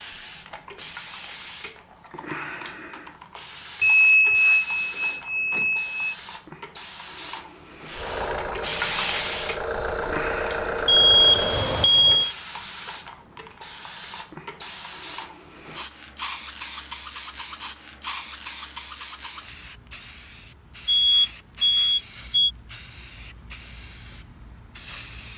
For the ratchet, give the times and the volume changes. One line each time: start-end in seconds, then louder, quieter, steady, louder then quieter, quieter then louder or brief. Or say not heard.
not heard.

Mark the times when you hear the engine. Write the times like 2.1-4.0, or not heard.
7.9-11.8.